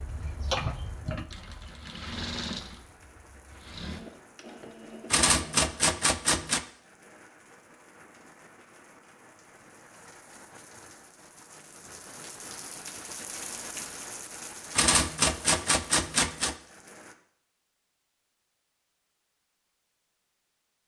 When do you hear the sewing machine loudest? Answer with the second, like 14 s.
1 s.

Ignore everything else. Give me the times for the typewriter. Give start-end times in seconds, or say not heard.
5.1-6.7, 14.8-16.6.